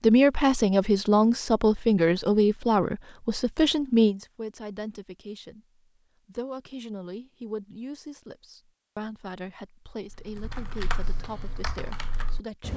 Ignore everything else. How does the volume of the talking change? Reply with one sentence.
The volume of the talking goes down.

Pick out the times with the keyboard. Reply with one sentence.
The keyboard can be heard from 10.1 to 12.7 s.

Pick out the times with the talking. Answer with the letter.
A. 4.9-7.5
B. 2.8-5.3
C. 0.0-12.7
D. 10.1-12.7
C.